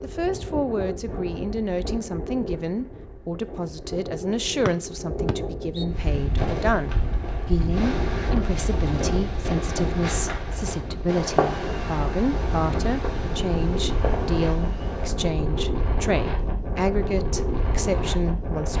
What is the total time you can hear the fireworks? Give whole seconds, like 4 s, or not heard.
9 s.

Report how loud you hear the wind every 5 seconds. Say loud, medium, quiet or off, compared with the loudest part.
medium, loud, loud, loud.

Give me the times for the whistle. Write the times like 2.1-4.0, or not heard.
4.7-5.8.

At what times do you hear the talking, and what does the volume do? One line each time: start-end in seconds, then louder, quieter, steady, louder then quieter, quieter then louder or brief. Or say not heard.
0.0-18.7 steady.